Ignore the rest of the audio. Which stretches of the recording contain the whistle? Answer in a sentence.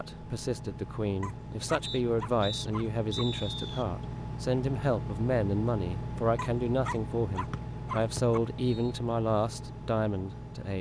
The whistle can be heard from 1.8 to 3.9 s and from 7.5 to 8.9 s.